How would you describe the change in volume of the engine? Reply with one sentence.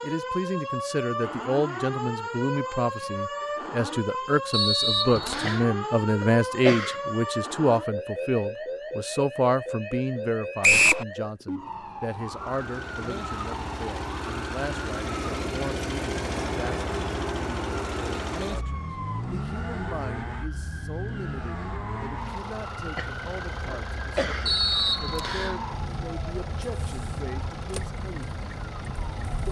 The volume of the engine goes down.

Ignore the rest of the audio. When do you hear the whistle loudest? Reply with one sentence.
The volume of the whistle peaks at 11 seconds.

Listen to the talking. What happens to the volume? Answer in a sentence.
The loudness of the talking goes down.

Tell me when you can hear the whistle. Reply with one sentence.
The whistle can be heard from 4.5 to 5.7 s, from 10.6 to 11.1 s and from 24.4 to 25.6 s.